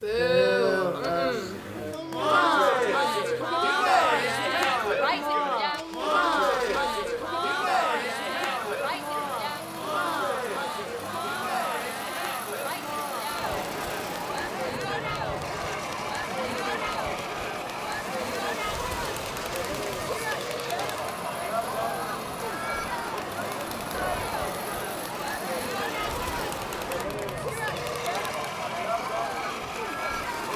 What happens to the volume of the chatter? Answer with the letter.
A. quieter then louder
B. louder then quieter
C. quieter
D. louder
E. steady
C.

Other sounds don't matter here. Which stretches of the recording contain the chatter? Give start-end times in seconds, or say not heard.
0.0-30.5.